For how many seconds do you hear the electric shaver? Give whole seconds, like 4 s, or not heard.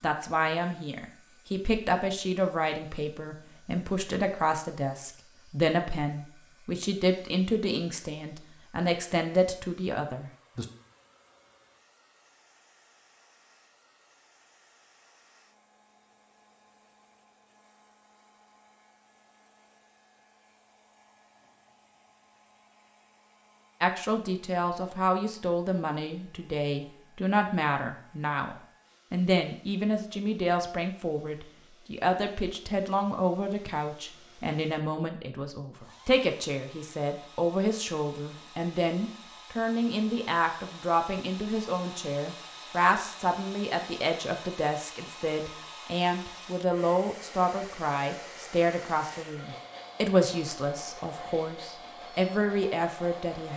not heard.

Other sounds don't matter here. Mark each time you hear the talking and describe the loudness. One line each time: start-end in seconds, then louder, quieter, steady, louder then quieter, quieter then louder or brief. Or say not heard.
0.0-10.7 steady
23.8-53.5 steady.